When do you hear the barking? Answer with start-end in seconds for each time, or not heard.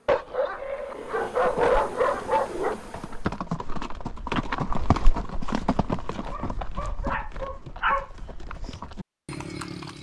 0.1-2.8, 6.3-8.1.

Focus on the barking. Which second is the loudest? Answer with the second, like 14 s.
2 s.